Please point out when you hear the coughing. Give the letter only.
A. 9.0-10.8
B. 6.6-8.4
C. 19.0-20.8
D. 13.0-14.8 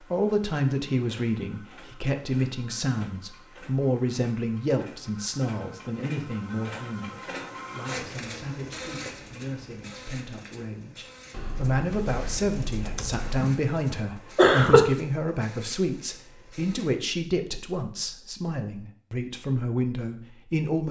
D.